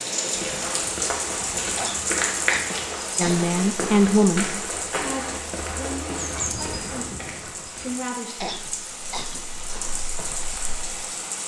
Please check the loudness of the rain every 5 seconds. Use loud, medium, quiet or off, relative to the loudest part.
loud, medium, loud.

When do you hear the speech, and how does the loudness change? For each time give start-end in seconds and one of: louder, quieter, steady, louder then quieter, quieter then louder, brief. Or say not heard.
3.1-8.6 quieter then louder.